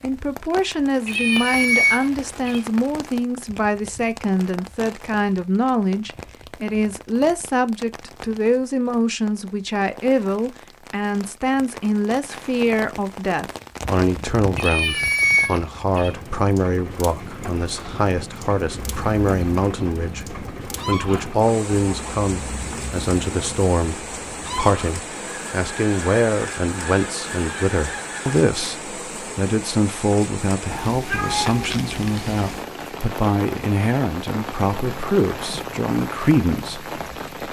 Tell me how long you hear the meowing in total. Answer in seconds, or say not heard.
5 s.